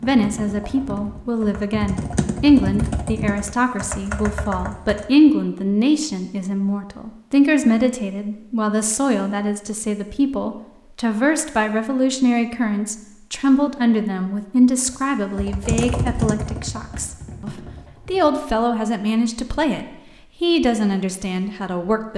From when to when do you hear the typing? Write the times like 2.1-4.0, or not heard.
0.0-5.3, 14.8-18.4.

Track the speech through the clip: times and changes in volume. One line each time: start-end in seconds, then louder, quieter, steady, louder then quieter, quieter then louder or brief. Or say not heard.
0.0-22.1 steady.